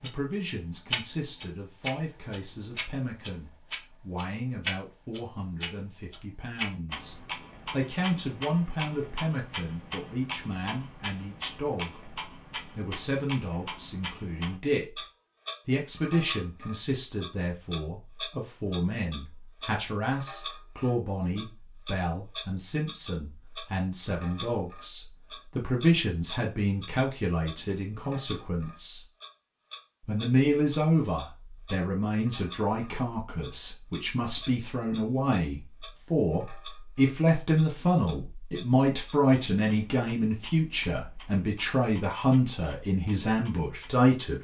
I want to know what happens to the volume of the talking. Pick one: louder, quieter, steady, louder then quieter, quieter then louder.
louder.